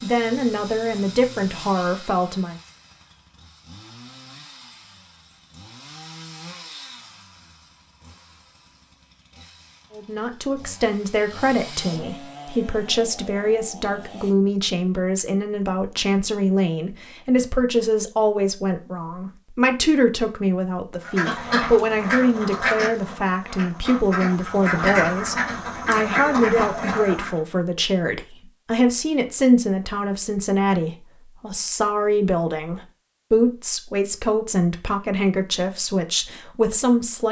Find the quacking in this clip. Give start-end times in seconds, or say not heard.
21.0-27.4.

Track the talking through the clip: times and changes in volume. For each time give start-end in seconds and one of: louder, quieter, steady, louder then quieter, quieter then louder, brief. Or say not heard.
0.0-2.5 brief
9.9-37.2 steady.